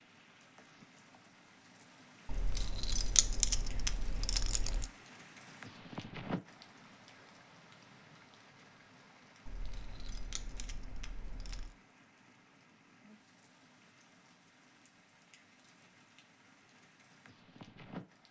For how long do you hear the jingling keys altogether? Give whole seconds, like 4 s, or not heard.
5 s.